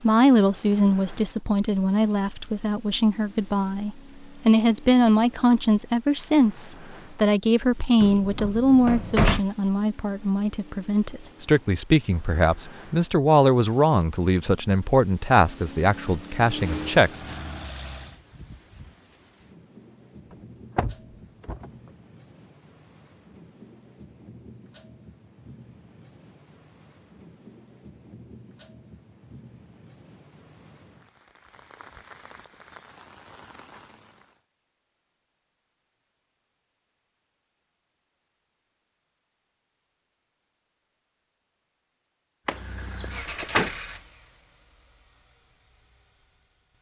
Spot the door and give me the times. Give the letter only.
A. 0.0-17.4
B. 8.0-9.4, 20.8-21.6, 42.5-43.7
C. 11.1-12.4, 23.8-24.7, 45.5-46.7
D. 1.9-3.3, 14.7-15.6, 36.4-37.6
B.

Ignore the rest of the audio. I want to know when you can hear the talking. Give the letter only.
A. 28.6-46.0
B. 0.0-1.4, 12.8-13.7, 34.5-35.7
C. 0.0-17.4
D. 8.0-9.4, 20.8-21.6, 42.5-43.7
C.